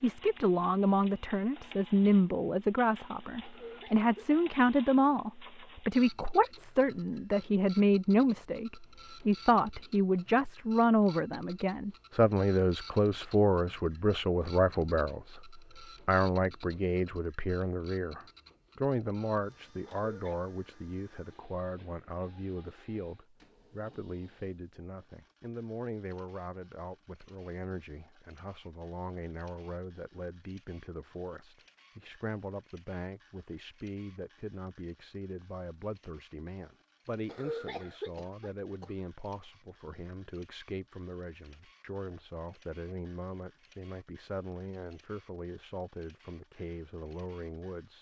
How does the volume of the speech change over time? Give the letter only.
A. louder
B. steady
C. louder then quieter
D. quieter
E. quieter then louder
D.